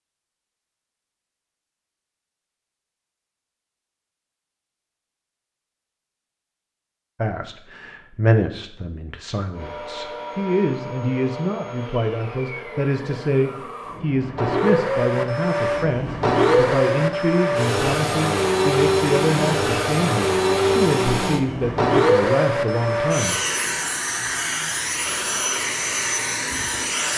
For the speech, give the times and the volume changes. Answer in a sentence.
You can hear the speech from 7.2 to 23.4 s, at a steady volume.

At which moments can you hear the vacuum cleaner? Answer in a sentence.
The vacuum cleaner can be heard from 9.5 to 27.1 s.